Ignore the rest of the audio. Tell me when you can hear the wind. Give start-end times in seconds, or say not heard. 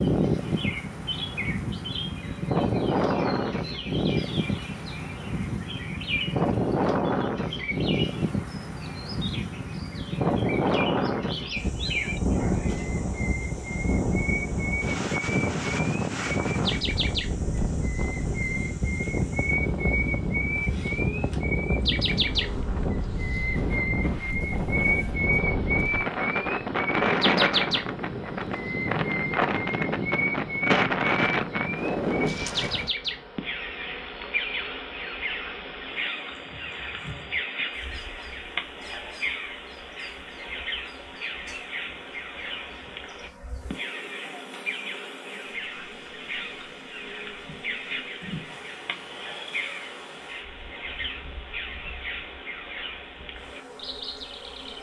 0.0-33.0.